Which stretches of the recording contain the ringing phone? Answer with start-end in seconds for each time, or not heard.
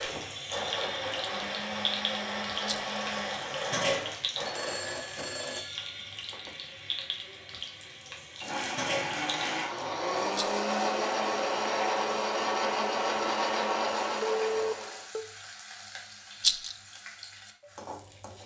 4.5-5.8, 14.2-15.2.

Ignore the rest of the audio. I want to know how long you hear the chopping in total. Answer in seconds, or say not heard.
not heard.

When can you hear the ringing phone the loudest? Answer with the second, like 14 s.
15 s.